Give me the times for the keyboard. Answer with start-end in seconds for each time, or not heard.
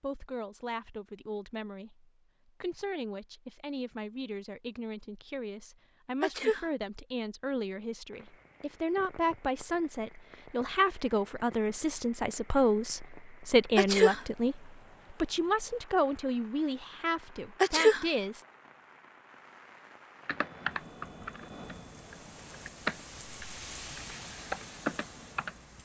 20.2-25.6.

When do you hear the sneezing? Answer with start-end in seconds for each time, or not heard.
6.2-6.7, 13.8-14.2, 17.6-18.1.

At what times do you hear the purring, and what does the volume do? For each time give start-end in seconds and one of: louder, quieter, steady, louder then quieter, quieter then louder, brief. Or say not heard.
not heard.